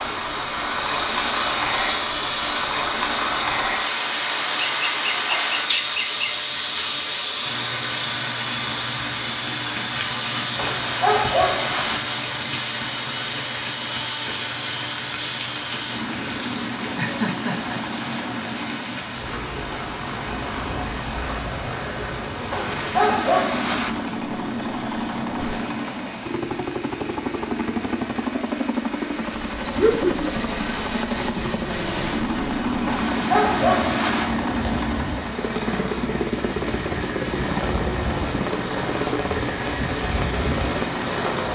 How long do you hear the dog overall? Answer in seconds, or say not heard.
4 s.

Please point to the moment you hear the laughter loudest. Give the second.
30 s.